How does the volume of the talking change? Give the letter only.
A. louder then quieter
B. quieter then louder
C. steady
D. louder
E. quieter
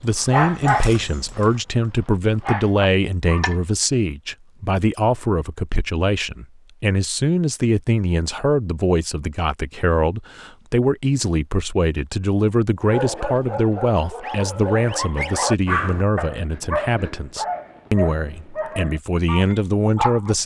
C.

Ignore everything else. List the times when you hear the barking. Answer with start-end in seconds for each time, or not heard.
0.0-3.6, 12.8-20.4.